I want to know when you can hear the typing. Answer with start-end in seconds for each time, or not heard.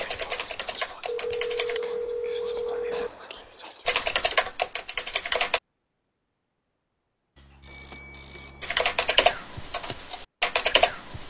0.0-1.8, 3.9-5.6, 8.6-11.2.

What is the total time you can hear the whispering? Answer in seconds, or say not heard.
4 s.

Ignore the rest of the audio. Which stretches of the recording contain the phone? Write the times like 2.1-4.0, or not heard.
1.1-3.1, 7.3-9.2.